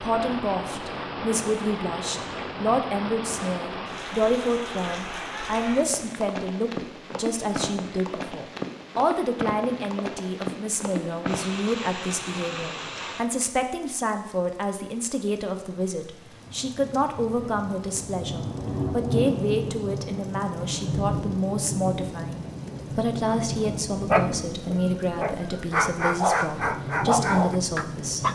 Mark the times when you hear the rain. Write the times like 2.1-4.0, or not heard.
0.0-28.2.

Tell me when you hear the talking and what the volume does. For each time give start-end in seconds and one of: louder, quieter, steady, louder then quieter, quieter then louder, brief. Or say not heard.
0.0-28.2 steady.